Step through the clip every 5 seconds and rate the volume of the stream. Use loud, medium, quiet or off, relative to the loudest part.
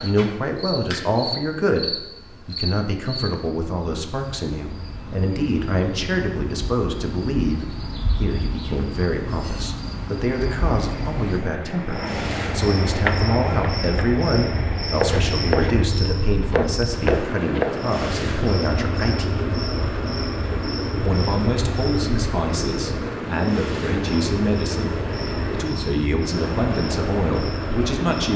off, off, loud, loud, loud, loud.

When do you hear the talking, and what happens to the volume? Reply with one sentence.
You can hear the talking from 0.0 to 19.4 s, at a steady volume; and from 21.1 to 28.3 s, at a steady volume.